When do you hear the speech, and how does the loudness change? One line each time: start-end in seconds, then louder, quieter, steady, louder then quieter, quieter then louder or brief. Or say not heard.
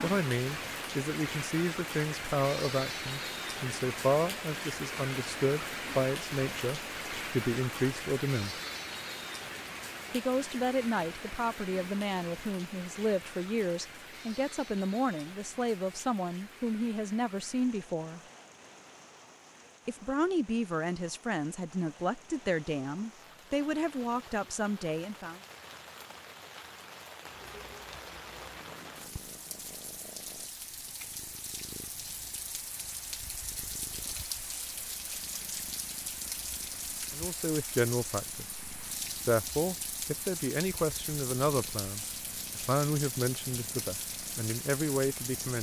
0.0-8.6 steady
10.1-18.2 steady
19.9-25.4 steady
37.1-38.5 brief
39.2-45.5 steady.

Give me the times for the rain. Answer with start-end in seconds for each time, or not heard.
0.0-45.5.